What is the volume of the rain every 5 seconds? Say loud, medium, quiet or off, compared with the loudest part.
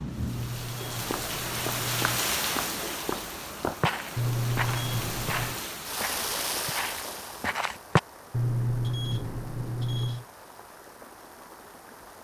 loud, loud, quiet.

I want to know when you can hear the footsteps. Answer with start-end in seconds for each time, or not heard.
1.1-8.0.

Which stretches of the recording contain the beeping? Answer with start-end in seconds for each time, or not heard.
0.1-2.2, 4.2-5.6, 8.3-10.2.